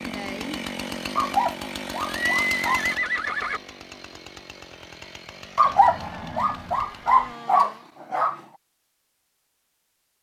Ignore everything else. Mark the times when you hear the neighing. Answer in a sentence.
You can hear the neighing from 2.0 to 3.6 s and from 5.6 to 7.3 s.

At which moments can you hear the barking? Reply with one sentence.
The barking can be heard from 1.1 to 2.9 s and from 5.5 to 8.4 s.